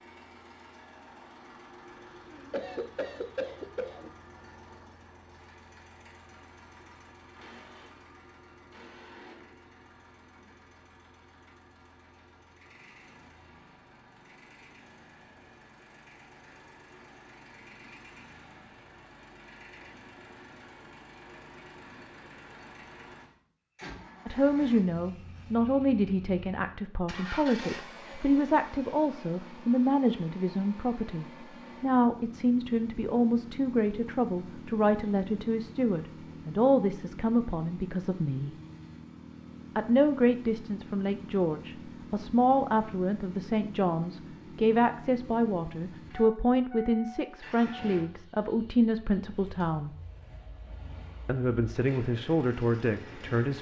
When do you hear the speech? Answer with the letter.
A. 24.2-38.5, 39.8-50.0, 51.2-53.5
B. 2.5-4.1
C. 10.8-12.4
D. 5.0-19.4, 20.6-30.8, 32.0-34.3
A.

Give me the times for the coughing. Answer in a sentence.
You can hear the coughing from 2.5 to 4.1 s.